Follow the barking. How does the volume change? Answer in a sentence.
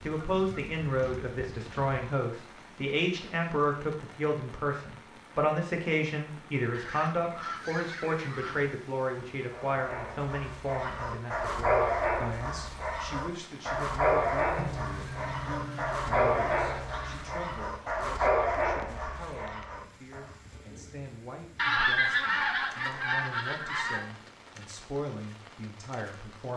The loudness of the barking stays about the same.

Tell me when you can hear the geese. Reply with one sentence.
The geese can be heard from 0.0 to 2.0 s, from 6.7 to 8.8 s, from 14.6 to 17.4 s and from 21.6 to 24.1 s.